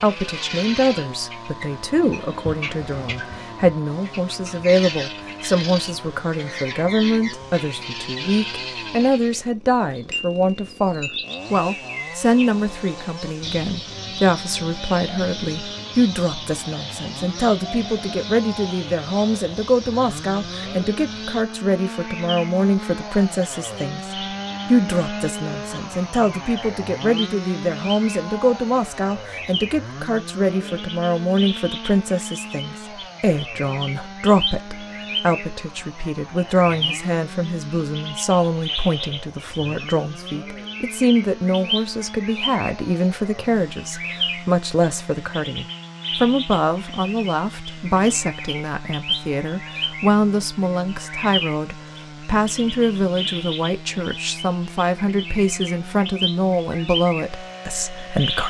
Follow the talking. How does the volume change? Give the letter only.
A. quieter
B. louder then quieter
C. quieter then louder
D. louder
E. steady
E.